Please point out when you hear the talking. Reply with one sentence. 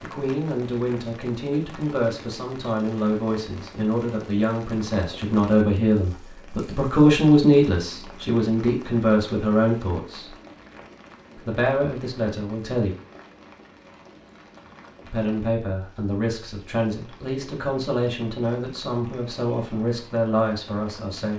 You can hear the talking from 0.0 to 10.3 s, from 11.3 to 12.9 s and from 15.1 to 21.3 s.